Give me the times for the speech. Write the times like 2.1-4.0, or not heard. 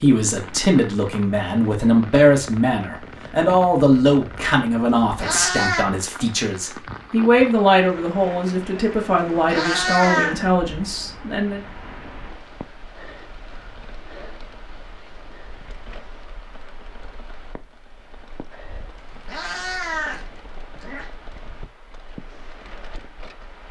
0.0-11.6.